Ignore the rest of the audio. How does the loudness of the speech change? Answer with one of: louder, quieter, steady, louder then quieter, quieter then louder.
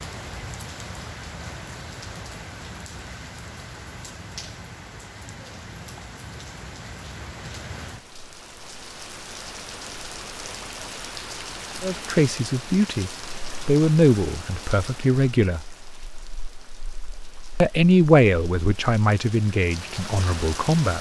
louder then quieter.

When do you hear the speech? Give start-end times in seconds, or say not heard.
11.8-15.7, 17.6-20.9.